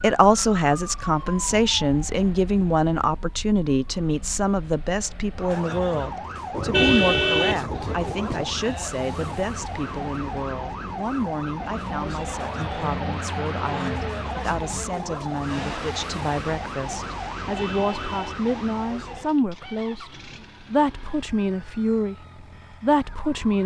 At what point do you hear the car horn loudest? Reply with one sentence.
The loudest moment of the car horn is at 7 seconds.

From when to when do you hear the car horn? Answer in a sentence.
The car horn can be heard from 6.5 to 8.4 s and from 17.4 to 19.2 s.